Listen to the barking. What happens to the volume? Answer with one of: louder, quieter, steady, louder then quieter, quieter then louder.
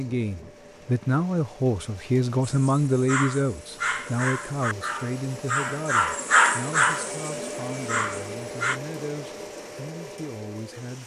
louder then quieter.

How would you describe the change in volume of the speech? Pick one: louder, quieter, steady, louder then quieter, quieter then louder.
quieter.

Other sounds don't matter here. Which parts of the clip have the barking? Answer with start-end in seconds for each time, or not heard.
2.5-8.8.